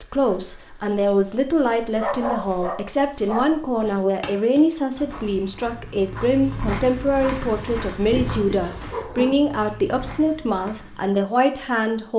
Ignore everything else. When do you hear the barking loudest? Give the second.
2 s.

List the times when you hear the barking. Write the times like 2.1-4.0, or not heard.
2.0-3.5, 8.1-9.3.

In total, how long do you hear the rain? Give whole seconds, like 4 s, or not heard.
not heard.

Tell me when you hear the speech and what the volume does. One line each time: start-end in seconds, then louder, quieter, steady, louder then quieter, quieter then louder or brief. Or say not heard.
0.0-12.1 steady.